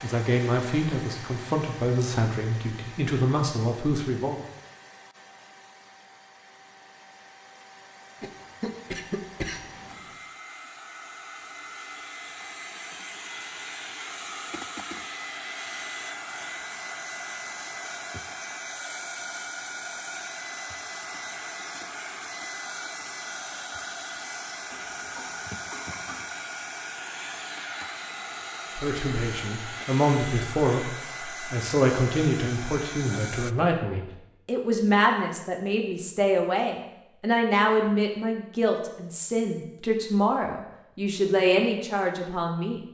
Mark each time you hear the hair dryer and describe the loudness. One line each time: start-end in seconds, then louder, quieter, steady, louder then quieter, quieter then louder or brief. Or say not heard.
0.0-33.5 louder.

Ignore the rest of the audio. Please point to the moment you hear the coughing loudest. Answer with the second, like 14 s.
9 s.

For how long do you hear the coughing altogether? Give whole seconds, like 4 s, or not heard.
4 s.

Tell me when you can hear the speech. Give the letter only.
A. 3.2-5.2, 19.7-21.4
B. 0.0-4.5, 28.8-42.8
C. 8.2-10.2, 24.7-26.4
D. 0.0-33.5
B.